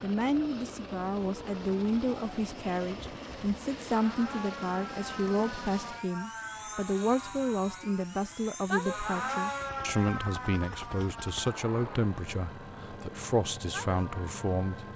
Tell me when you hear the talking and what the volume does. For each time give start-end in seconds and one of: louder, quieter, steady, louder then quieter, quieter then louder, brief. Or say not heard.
0.0-14.9 steady.